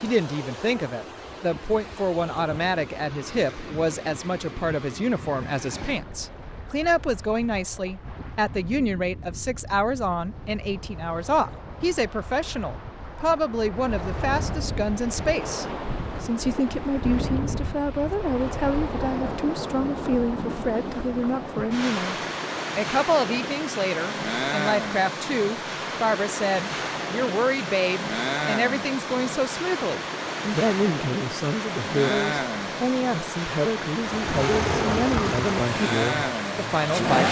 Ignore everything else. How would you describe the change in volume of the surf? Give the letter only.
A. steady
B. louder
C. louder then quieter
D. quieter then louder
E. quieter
B.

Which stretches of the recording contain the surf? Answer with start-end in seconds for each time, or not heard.
0.0-37.1.